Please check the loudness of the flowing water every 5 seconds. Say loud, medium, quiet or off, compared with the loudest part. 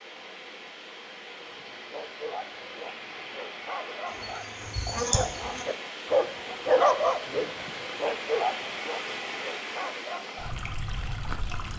medium, loud, loud.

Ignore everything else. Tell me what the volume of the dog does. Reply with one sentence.
The volume of the dog goes up, then down.